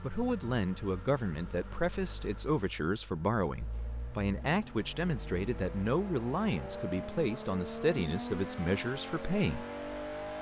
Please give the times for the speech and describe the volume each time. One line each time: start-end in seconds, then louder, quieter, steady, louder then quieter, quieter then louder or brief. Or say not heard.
0.0-9.7 steady.